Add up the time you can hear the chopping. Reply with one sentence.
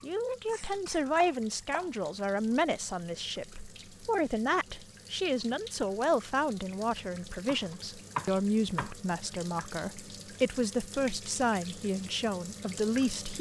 You can hear the chopping for 2 seconds altogether.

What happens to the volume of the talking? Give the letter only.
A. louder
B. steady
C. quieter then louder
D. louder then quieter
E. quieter
B.